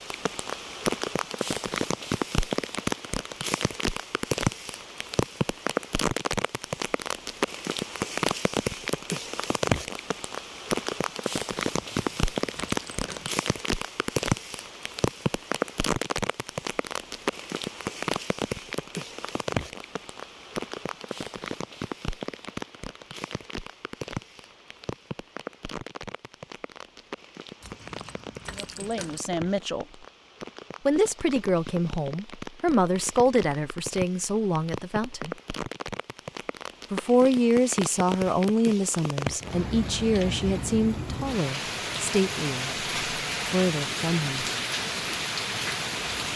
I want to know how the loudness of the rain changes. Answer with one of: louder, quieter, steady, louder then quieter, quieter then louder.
quieter then louder.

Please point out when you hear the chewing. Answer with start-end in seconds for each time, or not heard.
not heard.